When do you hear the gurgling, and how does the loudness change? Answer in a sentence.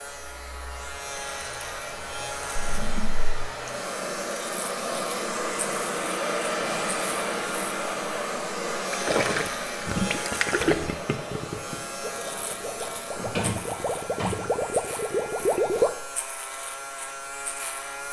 You can hear the gurgling from 8.9 to 15.9 s, getting quieter then louder.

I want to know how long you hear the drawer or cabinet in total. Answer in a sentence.
The drawer or cabinet can be heard for 2 seconds in total.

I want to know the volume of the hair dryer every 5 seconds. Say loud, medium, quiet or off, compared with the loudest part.
medium, loud, medium, quiet.